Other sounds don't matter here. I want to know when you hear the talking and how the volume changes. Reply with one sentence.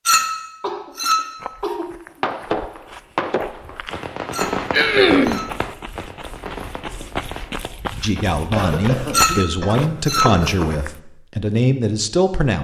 The talking can be heard from 8.0 to 12.6 s, getting quieter then louder.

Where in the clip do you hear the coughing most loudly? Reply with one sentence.
The volume of the coughing peaks at 5 seconds.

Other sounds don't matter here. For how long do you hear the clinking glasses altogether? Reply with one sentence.
You can hear the clinking glasses for 4 seconds altogether.